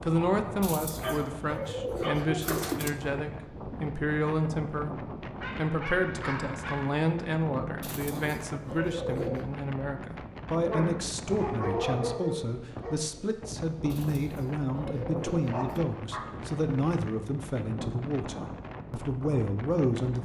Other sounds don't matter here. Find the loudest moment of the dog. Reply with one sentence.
The loudest moment of the dog is at 12 seconds.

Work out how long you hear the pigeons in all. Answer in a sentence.
You can hear the pigeons for 6 seconds altogether.